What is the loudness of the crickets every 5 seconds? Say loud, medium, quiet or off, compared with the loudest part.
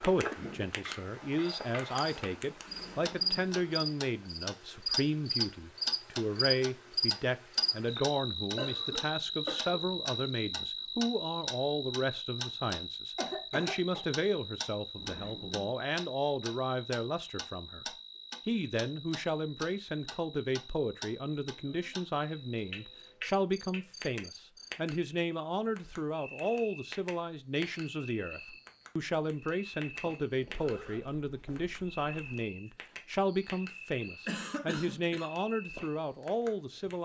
loud, loud, medium, quiet, quiet, quiet, quiet, quiet.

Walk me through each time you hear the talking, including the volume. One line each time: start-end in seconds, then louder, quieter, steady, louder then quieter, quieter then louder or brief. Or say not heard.
0.0-37.0 steady.